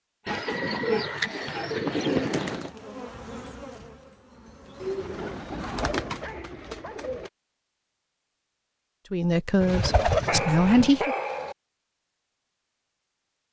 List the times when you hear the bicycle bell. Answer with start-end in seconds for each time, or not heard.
not heard.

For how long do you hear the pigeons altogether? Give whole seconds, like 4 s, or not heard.
6 s.